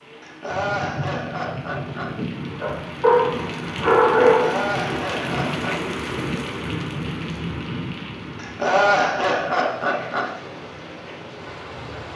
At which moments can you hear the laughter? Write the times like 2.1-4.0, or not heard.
0.2-2.1, 4.4-6.0, 8.3-10.3.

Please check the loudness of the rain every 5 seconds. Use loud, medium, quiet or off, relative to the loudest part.
loud, loud, medium.